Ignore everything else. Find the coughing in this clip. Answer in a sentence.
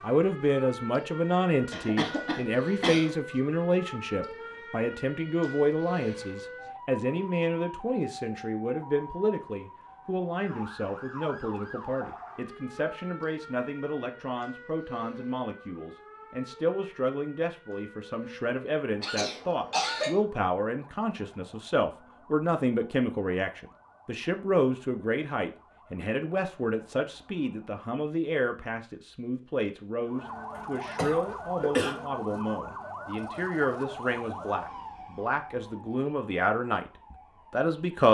The coughing can be heard from 1.7 to 3.1 s, from 19.0 to 20.2 s and from 30.6 to 31.9 s.